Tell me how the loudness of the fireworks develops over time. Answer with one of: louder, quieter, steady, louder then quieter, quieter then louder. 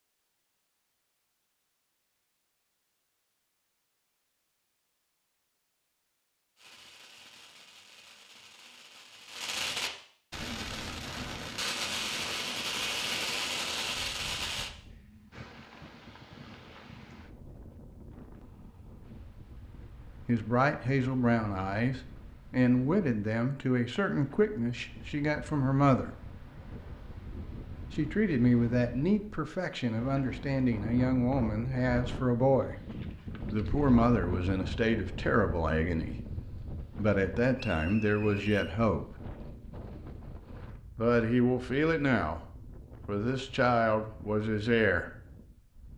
louder.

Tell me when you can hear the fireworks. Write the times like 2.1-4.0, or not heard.
6.5-14.7.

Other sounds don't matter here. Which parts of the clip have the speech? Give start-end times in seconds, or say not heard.
20.2-26.1, 27.9-32.8, 33.5-39.1, 41.0-42.4, 43.0-45.1.